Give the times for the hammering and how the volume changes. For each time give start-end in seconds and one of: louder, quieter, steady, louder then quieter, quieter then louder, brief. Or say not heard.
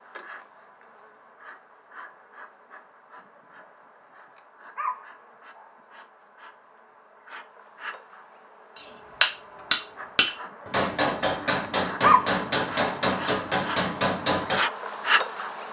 8.8-14.6 quieter.